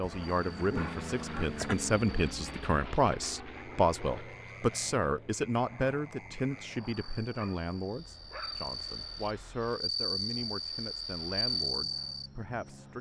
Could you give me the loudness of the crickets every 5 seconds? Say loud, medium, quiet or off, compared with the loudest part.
quiet, medium, loud.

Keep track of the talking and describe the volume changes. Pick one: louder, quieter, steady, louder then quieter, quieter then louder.
quieter.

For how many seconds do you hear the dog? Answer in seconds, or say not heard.
3 s.